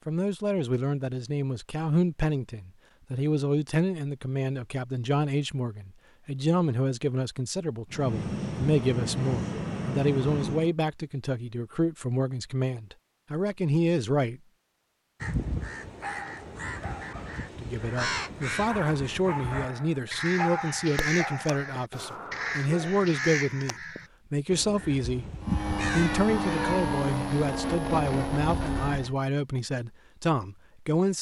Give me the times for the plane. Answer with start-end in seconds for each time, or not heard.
7.9-10.8, 25.4-29.1.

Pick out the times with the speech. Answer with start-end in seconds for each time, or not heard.
0.1-14.4, 17.6-25.2, 25.9-31.1.